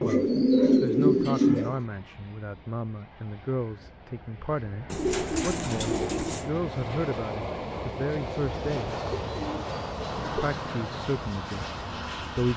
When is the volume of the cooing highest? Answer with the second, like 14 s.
1 s.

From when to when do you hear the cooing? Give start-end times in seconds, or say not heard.
0.0-1.8, 4.9-6.5, 8.5-10.6.